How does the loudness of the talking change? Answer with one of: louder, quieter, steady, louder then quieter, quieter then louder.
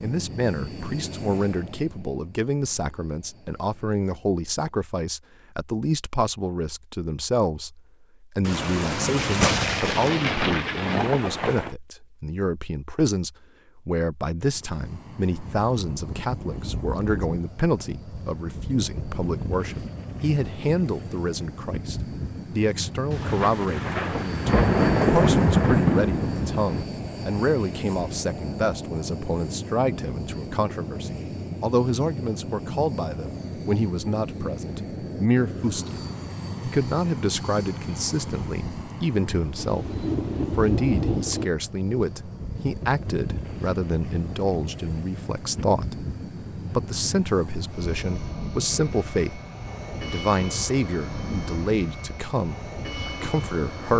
steady.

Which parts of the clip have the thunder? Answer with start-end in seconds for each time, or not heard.
8.4-11.7, 23.1-26.9, 39.5-41.5.